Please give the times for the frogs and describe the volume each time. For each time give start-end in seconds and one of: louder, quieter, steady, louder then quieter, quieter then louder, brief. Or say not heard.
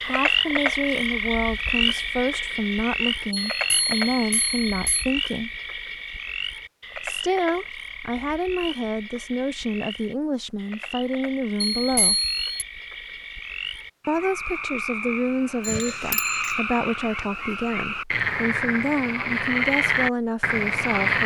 0.0-21.2 quieter then louder.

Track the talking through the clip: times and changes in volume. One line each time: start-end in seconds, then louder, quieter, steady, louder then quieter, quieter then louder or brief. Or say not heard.
0.0-5.5 steady
7.0-12.2 steady
14.1-21.2 steady.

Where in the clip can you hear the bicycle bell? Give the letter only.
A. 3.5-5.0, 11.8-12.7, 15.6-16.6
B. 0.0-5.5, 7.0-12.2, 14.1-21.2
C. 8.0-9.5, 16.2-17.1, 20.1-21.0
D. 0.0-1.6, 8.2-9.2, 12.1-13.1
A.